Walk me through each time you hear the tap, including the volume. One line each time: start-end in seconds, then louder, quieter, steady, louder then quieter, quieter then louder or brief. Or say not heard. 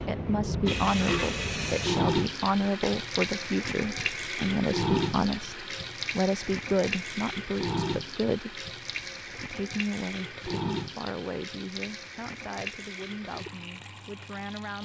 0.0-14.8 quieter.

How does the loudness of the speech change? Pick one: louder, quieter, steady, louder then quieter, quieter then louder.
quieter.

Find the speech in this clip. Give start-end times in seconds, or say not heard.
0.0-8.7, 9.3-14.8.